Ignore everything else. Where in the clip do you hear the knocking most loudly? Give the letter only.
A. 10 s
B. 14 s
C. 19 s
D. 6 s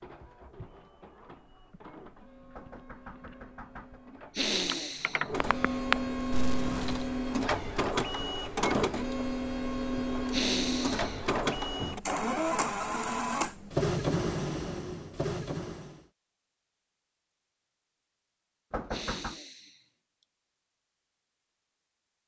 C.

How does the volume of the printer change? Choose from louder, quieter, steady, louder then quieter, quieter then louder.
louder.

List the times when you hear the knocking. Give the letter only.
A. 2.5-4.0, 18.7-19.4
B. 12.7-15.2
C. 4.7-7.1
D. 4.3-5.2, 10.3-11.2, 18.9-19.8
A.